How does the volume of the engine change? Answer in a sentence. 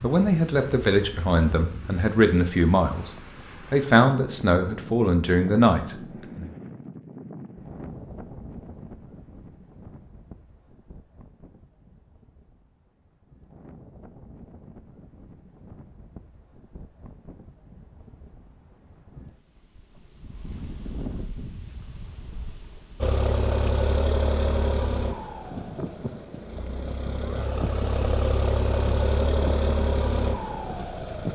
The loudness of the engine goes down, then up.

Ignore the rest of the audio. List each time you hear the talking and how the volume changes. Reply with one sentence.
You can hear the talking from 0.0 to 6.5 s, at a steady volume.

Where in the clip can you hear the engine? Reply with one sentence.
The engine can be heard from 23.0 to 31.3 s.